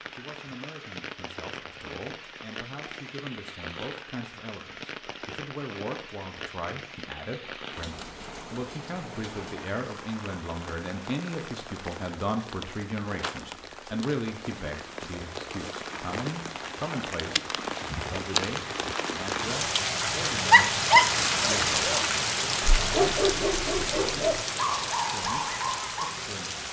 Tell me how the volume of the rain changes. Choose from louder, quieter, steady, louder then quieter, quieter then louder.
louder.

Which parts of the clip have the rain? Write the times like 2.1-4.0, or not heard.
0.0-26.6.